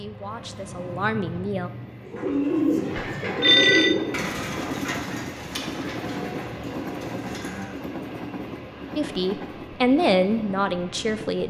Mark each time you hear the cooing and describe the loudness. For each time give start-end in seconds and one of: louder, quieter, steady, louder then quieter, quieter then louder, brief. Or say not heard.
2.0-7.7 quieter.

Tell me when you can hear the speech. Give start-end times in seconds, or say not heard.
0.0-1.7, 8.9-11.4.